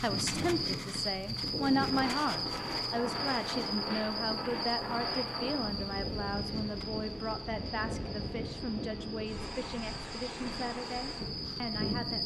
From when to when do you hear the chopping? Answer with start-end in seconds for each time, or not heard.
not heard.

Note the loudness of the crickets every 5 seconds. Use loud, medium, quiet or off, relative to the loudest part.
loud, medium, loud.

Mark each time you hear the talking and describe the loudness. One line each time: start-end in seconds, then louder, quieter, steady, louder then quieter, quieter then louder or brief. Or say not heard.
0.0-12.2 quieter.